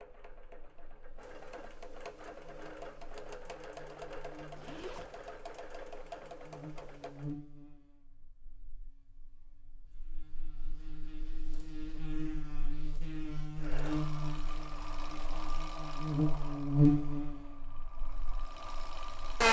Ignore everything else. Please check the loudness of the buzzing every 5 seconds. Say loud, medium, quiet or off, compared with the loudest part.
quiet, quiet, medium, loud.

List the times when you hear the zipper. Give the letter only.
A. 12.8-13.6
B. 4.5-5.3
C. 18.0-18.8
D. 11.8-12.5
B.